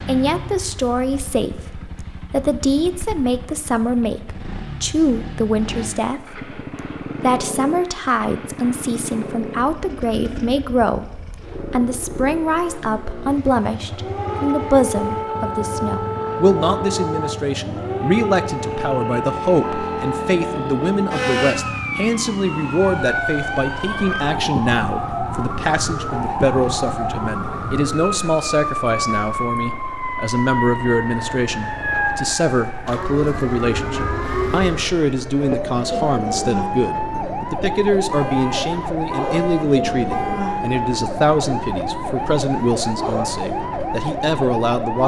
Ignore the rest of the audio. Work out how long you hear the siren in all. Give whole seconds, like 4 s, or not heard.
31 s.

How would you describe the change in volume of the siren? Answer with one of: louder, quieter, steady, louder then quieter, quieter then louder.
steady.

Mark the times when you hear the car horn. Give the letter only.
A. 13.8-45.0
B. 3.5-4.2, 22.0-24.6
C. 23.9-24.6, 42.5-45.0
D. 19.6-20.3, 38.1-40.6
D.